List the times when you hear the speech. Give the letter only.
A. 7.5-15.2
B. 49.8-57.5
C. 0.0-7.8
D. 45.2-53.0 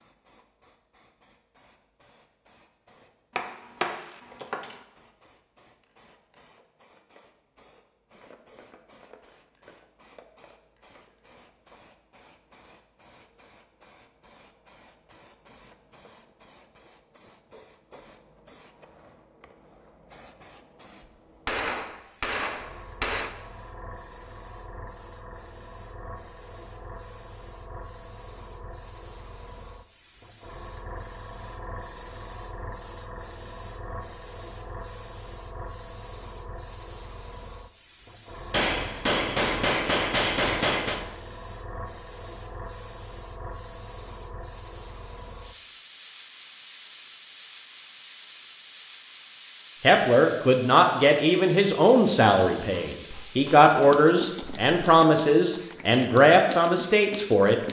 B.